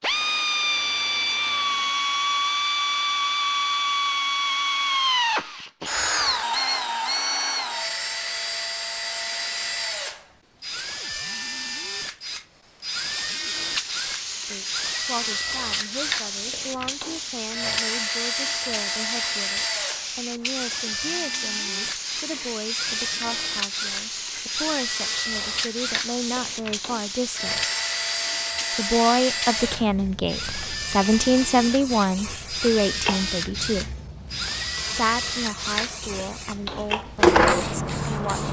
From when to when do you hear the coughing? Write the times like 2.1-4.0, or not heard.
not heard.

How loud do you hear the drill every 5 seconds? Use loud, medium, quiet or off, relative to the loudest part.
loud, loud, medium, medium, medium, medium, medium, loud.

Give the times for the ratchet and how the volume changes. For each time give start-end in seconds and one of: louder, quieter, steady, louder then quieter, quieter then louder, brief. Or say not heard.
not heard.